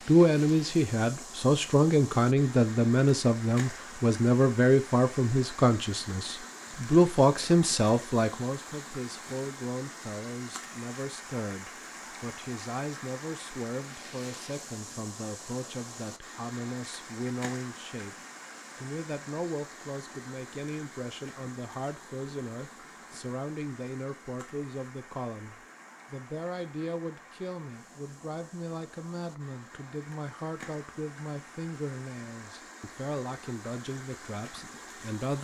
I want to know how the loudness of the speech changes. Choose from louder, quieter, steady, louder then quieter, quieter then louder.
quieter.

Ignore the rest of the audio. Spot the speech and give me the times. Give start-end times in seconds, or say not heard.
0.1-18.1, 18.8-35.3.